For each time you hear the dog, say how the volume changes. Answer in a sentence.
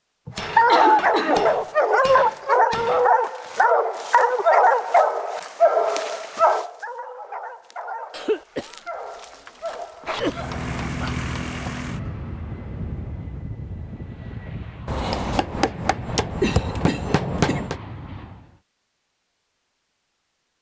The dog can be heard from 0.3 to 11.1 s, getting quieter.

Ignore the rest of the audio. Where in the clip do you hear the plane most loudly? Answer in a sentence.
The loudest moment of the plane is at 11 seconds.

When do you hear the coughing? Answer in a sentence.
The coughing can be heard from 0.2 to 1.6 s, from 8.1 to 10.5 s and from 16.4 to 17.6 s.